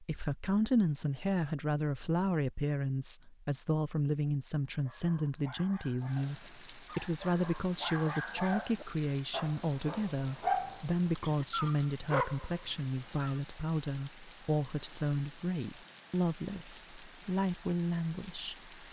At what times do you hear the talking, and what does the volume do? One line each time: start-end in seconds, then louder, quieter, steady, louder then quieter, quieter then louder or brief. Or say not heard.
0.0-18.8 steady.